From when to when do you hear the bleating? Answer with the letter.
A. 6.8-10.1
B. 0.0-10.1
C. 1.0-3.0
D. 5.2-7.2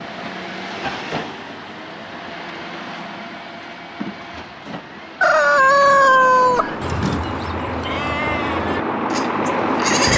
A.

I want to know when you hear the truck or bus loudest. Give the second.
10 s.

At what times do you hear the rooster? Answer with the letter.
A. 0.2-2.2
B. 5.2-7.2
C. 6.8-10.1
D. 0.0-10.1
B.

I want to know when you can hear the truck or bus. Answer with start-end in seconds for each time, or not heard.
0.0-10.1.